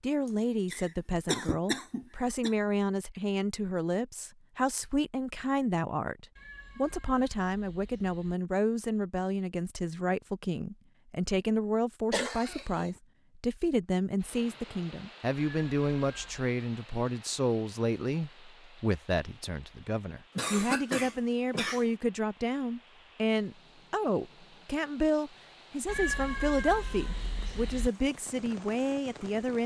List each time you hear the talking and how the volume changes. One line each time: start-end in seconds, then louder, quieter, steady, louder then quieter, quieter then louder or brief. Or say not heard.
0.0-29.6 steady.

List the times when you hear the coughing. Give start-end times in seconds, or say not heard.
0.2-2.5, 12.1-12.9, 20.4-21.9.